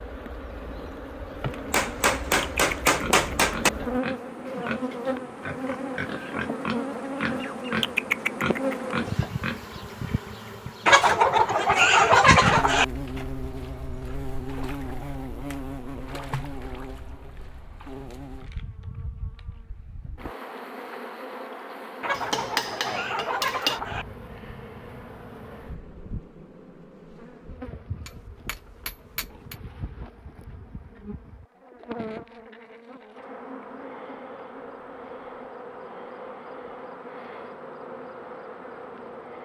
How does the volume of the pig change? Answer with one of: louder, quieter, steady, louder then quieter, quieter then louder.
louder.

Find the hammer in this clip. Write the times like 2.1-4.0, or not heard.
1.7-3.7, 22.1-23.8, 28.1-29.6.